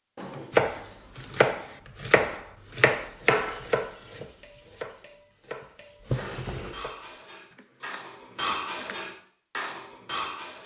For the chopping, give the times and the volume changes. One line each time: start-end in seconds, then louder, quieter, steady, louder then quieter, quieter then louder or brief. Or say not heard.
0.5-9.2 quieter.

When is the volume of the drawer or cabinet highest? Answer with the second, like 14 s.
6 s.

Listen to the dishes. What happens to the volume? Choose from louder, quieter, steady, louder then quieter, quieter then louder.
louder.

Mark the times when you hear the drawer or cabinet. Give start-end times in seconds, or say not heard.
0.1-1.2, 6.0-6.9.